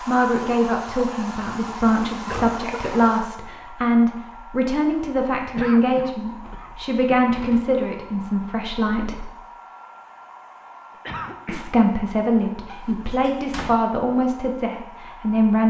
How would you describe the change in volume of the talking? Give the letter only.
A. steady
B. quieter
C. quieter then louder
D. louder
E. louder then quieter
A.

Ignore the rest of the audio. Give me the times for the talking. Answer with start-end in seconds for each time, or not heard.
0.0-9.3, 11.4-15.6.